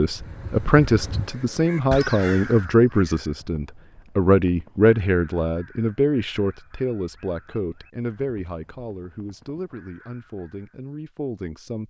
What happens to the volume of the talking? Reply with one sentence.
The loudness of the talking goes down.